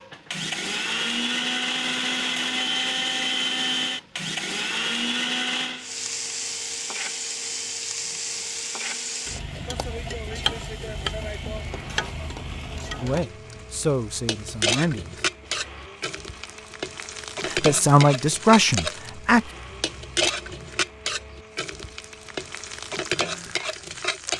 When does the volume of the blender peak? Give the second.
3 s.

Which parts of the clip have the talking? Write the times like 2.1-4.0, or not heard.
13.0-15.2, 17.4-19.4.